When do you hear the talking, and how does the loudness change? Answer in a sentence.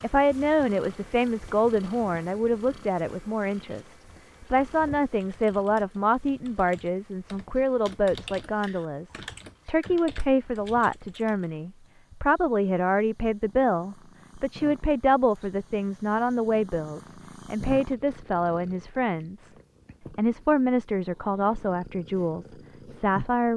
The talking can be heard from 0.0 to 23.5 s, at a steady volume.